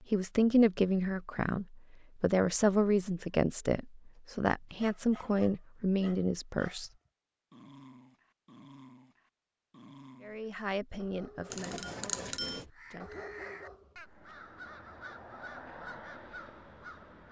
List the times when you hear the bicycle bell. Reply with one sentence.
You can hear the bicycle bell from 11.5 to 12.7 s.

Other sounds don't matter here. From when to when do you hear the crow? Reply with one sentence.
You can hear the crow from 12.7 to 17.2 s.